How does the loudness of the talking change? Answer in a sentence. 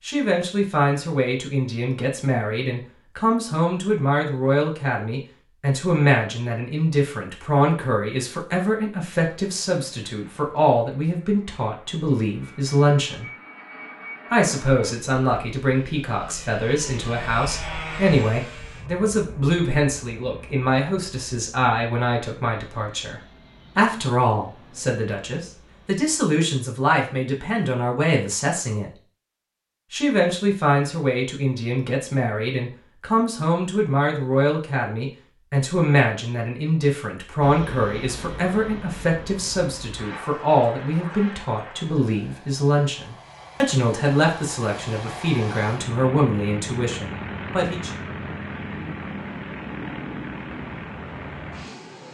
The loudness of the talking stays about the same.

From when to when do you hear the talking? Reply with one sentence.
You can hear the talking from 0.1 to 13.2 s, from 14.3 to 28.9 s and from 29.9 to 47.9 s.